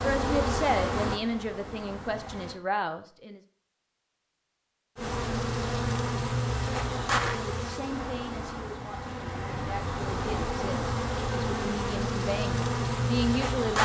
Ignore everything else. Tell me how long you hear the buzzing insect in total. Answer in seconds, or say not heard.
11 s.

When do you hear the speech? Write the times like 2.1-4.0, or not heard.
0.0-3.4, 7.3-13.7.